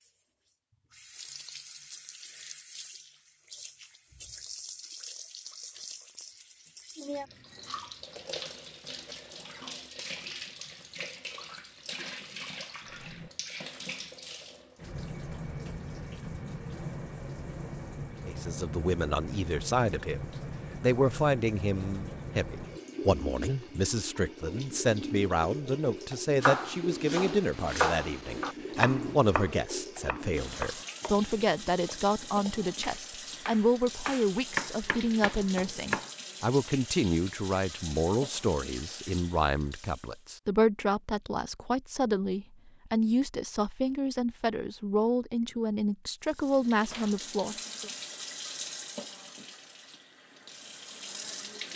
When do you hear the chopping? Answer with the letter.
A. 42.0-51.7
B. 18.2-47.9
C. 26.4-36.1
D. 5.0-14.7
C.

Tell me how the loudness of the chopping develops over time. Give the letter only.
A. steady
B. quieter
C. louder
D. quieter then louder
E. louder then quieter
D.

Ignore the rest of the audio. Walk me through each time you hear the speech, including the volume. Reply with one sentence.
The speech can be heard from 18.2 to 47.9 s, at a steady volume.